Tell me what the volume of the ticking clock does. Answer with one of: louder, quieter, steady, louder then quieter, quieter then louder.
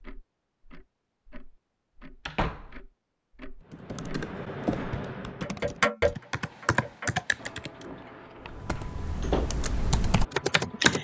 louder then quieter.